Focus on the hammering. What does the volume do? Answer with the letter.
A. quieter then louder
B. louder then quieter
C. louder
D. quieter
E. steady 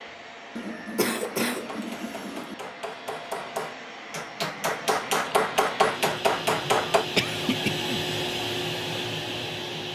C.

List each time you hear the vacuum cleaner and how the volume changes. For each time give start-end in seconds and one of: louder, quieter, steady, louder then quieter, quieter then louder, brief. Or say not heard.
0.0-9.9 louder.